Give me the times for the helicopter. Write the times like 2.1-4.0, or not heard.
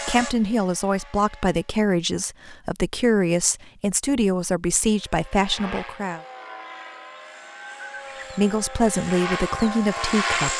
0.0-1.8, 4.8-10.5.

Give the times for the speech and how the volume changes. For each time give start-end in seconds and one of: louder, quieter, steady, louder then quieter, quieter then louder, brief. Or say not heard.
0.1-6.2 steady
8.3-10.5 brief.